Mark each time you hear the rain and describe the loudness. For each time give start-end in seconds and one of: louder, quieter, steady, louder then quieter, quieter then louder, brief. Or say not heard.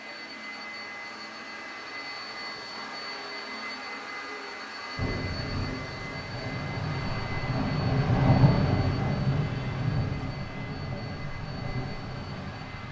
5.0-12.8 louder then quieter.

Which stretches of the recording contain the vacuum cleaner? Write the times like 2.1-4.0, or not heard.
0.0-12.8.